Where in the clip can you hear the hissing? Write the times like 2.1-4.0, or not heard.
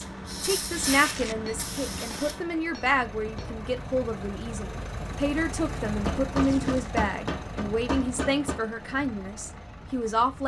0.0-2.6.